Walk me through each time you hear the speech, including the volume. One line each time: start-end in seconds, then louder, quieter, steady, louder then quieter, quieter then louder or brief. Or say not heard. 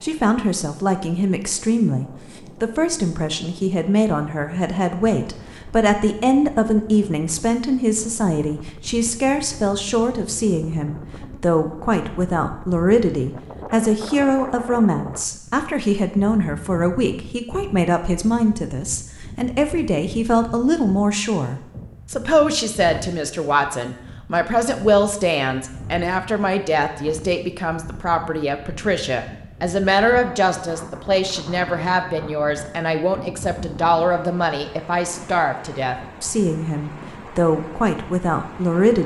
0.0-39.0 steady.